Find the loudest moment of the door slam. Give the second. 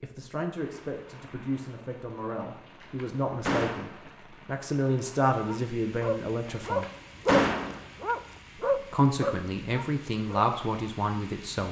7 s.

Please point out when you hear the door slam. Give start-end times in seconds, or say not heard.
2.8-4.0, 6.7-7.8.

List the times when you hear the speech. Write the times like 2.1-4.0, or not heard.
0.0-6.8, 8.9-11.6.